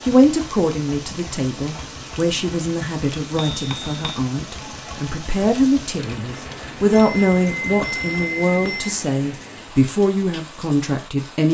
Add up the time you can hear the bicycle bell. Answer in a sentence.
You can hear the bicycle bell for 3 seconds altogether.